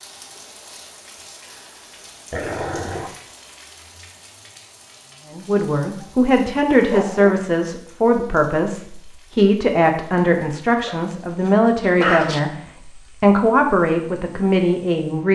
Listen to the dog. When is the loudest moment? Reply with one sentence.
The loudest moment of the dog is at 12 seconds.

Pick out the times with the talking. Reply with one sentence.
The talking can be heard from 5.2 to 15.3 s.